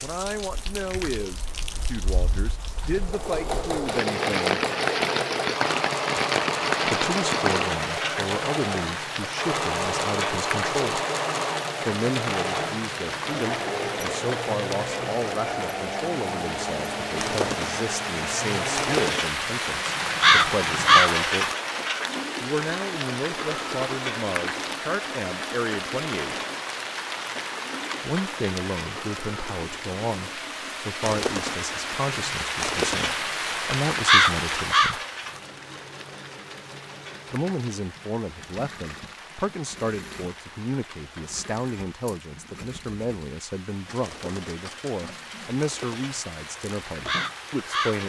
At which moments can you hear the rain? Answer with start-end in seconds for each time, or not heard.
0.0-48.0.